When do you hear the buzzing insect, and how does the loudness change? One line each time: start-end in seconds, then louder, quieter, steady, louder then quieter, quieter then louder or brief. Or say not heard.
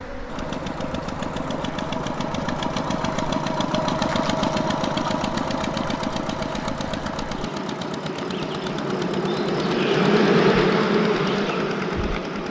0.0-12.4 louder.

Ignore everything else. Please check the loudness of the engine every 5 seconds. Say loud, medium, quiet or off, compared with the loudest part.
loud, loud, medium.